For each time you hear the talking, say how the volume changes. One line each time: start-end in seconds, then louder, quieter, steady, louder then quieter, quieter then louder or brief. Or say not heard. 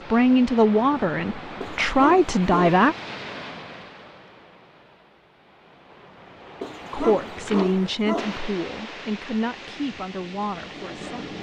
0.1-3.0 brief
6.9-11.3 quieter.